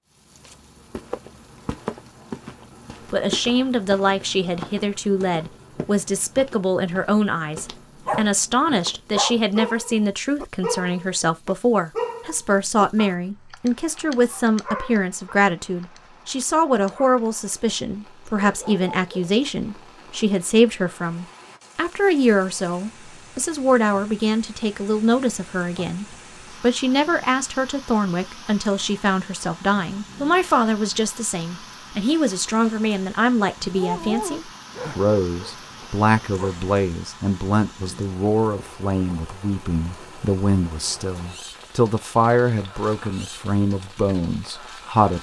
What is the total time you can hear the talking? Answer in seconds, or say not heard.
42 s.